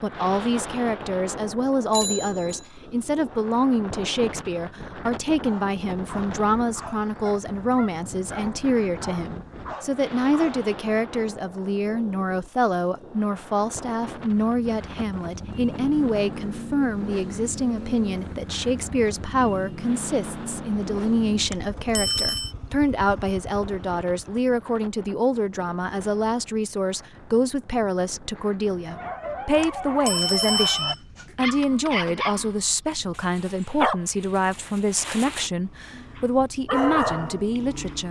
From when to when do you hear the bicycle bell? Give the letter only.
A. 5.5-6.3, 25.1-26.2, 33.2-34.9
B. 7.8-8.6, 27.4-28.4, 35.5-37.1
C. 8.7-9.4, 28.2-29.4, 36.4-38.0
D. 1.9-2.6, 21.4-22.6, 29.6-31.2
D.